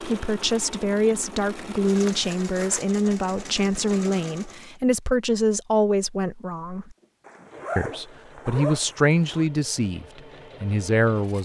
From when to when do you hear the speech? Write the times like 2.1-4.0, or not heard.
0.0-7.0, 7.8-11.4.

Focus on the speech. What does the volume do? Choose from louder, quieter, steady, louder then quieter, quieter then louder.
steady.